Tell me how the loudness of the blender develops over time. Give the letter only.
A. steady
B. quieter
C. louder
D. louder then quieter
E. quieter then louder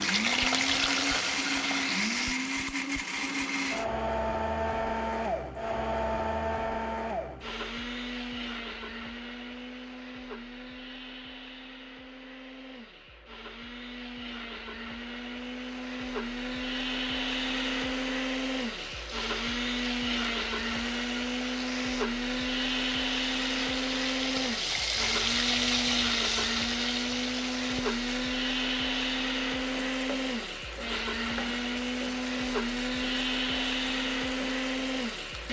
E.